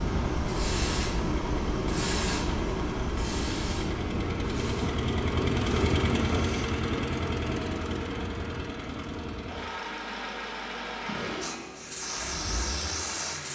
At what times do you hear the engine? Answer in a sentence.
You can hear the engine from 0.2 to 13.5 s.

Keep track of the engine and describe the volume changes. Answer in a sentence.
The volume of the engine goes up, then down.